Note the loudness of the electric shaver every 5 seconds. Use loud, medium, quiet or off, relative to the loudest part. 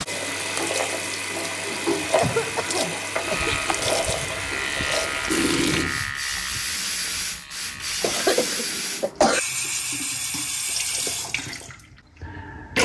loud, loud, off.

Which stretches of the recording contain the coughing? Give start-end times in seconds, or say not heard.
1.7-3.5, 8.0-9.4.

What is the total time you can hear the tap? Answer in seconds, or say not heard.
13 s.